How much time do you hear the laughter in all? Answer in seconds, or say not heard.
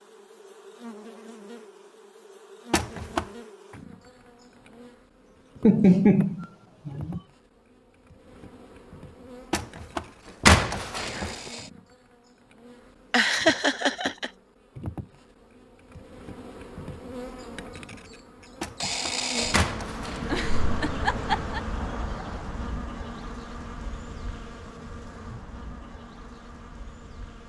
4 s.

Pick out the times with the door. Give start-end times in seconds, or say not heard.
2.7-3.3, 9.5-11.5, 18.6-20.4.